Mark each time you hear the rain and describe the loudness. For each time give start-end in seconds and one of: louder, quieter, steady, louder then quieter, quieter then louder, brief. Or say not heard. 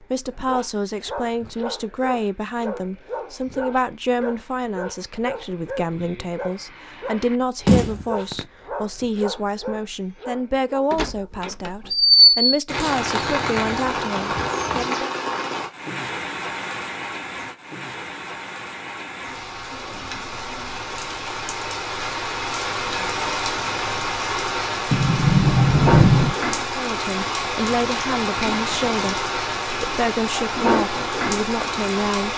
12.7-32.3 quieter then louder.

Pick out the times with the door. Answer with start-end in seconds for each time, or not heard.
7.7-8.4, 10.9-12.5, 24.9-26.4.